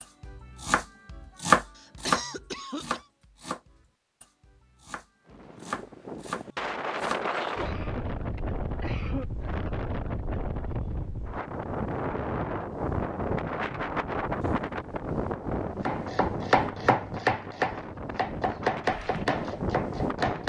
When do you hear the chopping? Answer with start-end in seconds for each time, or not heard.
0.2-7.2, 15.8-20.4.